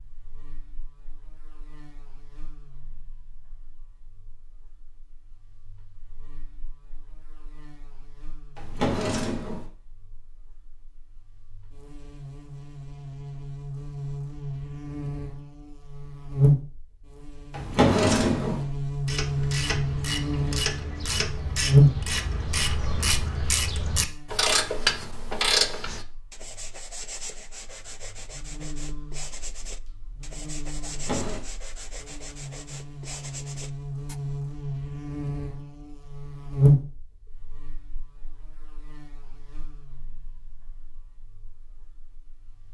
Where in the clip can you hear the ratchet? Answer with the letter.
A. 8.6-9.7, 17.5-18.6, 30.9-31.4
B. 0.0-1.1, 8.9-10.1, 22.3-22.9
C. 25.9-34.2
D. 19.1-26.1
D.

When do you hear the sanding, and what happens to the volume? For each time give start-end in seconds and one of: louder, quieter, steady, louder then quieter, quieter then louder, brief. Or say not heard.
25.9-34.2 steady.